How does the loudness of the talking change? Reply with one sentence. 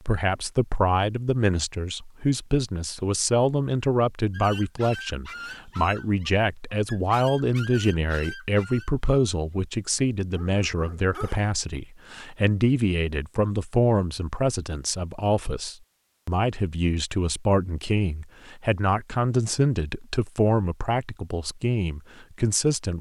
The loudness of the talking stays about the same.